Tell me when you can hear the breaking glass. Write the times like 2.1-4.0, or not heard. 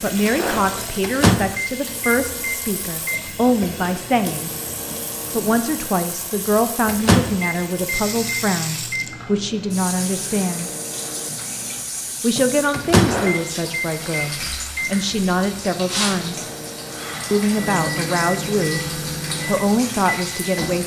0.2-0.9, 12.9-13.6.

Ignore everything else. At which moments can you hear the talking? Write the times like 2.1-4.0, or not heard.
0.0-4.5, 5.3-10.7, 12.2-16.4, 17.3-20.8.